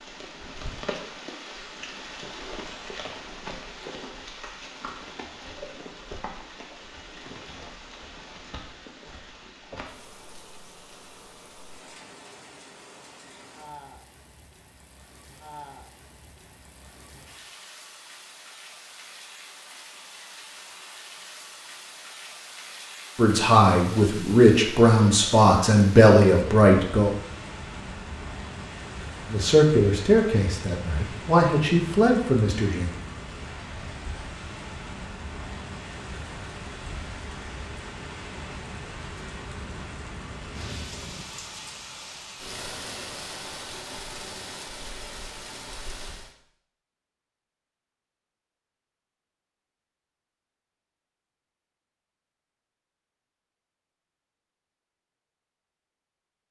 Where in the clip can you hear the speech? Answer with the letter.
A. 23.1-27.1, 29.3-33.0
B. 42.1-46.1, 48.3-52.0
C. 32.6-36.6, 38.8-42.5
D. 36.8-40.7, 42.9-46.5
A.